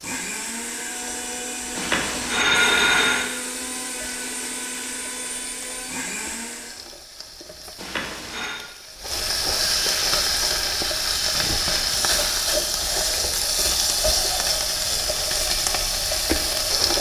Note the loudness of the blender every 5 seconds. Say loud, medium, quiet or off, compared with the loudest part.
loud, loud, off, off.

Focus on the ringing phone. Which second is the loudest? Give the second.
3 s.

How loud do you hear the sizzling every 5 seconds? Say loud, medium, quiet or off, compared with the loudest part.
quiet, medium, loud, loud.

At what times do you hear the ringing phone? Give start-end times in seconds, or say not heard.
1.8-3.2, 7.8-8.6, 11.6-12.4.